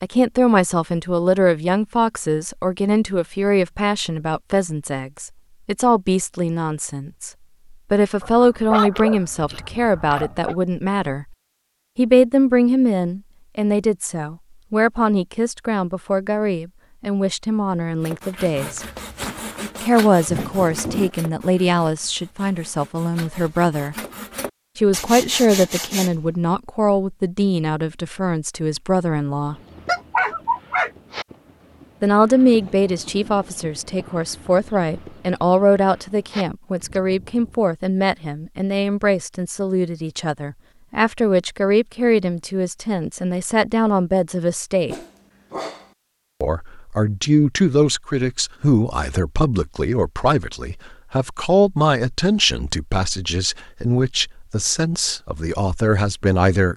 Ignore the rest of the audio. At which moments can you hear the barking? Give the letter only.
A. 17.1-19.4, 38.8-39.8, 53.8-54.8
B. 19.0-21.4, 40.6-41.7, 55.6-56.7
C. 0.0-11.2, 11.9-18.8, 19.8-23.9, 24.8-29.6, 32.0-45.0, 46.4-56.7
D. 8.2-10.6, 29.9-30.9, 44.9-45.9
D.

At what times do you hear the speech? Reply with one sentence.
The speech can be heard from 0.0 to 11.2 s, from 11.9 to 18.8 s, from 19.8 to 23.9 s, from 24.8 to 29.6 s, from 32.0 to 45.0 s and from 46.4 to 56.7 s.